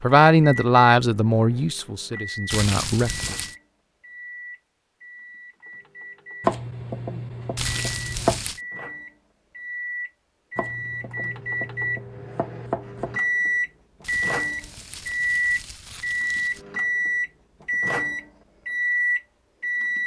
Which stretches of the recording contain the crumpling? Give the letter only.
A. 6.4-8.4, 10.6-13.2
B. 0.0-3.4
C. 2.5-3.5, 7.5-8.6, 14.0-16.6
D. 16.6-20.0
C.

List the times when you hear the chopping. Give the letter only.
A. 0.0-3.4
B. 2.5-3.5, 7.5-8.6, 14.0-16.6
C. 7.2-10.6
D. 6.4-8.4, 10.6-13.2
D.